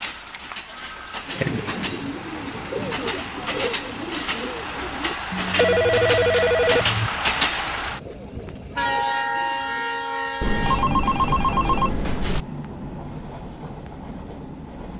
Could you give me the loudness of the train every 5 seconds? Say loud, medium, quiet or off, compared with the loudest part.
medium, loud, medium.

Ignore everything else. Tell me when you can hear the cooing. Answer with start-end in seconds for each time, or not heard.
1.2-10.2.